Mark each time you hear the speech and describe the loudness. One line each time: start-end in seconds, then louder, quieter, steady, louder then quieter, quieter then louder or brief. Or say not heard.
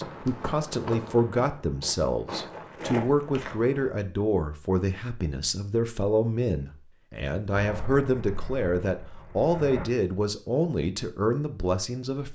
0.0-12.2 steady.